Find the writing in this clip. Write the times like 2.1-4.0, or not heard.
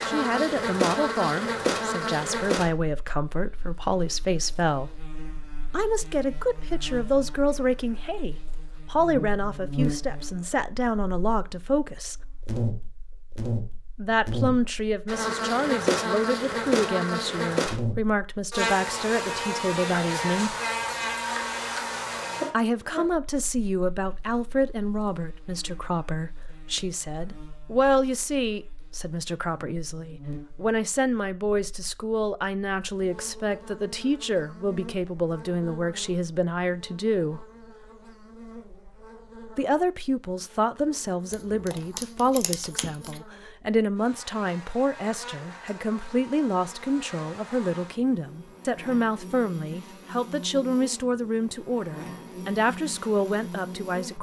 not heard.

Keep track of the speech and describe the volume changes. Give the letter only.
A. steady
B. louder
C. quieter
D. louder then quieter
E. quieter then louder
A.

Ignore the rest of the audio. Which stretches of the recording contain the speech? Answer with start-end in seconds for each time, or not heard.
0.0-5.0, 5.7-12.2, 13.9-20.6, 22.5-37.5, 39.5-54.1.